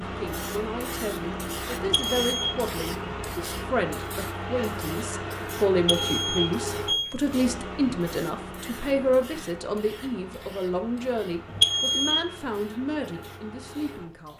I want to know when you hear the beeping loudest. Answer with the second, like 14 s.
12 s.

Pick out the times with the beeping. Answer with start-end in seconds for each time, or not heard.
1.8-2.6, 5.8-7.2, 11.4-12.3.